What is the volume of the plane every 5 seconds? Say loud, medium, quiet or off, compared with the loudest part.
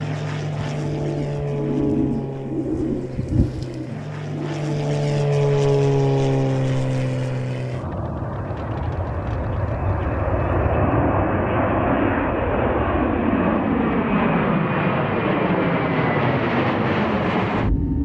medium, loud, loud, loud.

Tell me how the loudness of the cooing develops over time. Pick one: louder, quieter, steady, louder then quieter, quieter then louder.
louder then quieter.